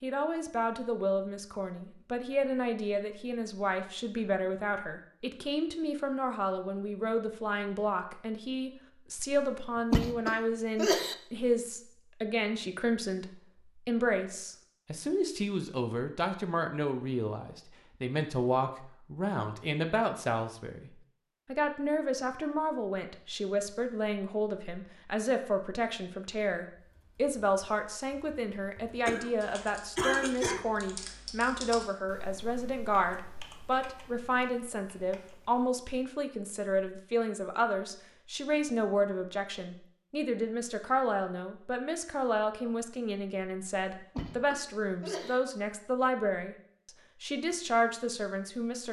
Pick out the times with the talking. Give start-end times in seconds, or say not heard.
0.0-48.8.